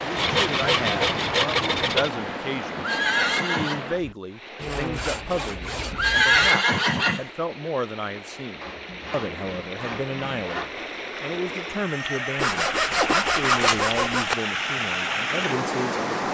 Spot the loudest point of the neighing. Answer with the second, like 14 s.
6 s.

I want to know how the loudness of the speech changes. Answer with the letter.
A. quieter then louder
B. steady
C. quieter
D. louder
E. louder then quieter
B.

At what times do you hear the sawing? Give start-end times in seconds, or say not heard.
0.1-2.1, 4.5-6.5, 8.6-10.7, 12.3-14.3.